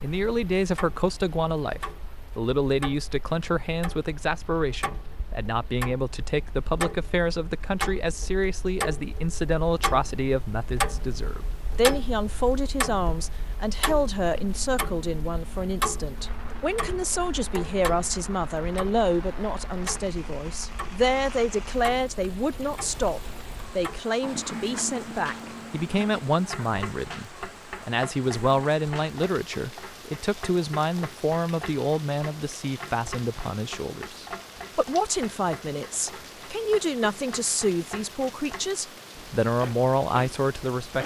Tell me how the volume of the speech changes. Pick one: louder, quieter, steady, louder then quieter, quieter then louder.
steady.